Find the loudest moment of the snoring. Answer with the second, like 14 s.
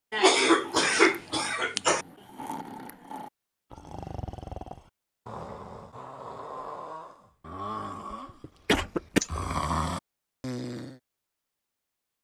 10 s.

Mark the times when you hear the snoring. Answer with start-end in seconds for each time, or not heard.
0.5-10.9.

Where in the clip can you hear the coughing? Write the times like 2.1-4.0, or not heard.
0.1-2.0, 8.4-9.4.